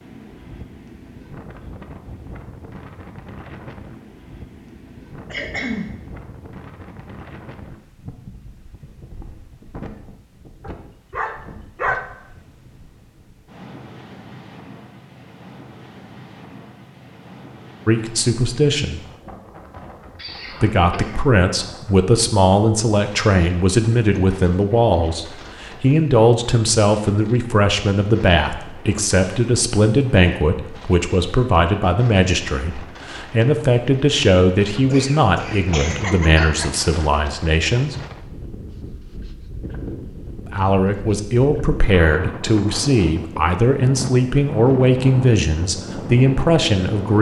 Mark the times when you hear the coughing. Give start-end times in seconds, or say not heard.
5.3-6.0, 20.1-21.2, 34.8-36.8.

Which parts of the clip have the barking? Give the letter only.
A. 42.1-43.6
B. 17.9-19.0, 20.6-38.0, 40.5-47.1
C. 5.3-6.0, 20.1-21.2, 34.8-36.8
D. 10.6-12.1
D.